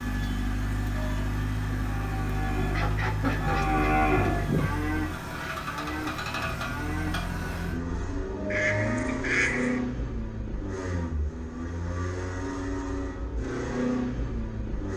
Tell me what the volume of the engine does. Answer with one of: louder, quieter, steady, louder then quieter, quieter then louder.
steady.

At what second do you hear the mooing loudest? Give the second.
4 s.